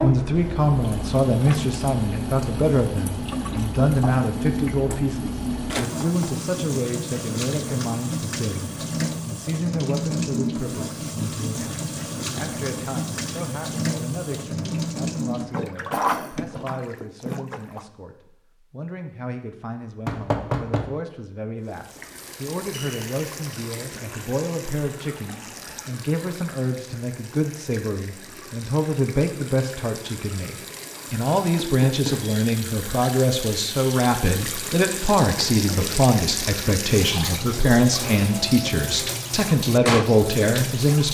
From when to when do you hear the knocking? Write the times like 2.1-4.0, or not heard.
5.8-6.3, 20.1-20.9, 31.6-32.2.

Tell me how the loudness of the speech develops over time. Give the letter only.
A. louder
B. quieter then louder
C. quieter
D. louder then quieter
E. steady
B.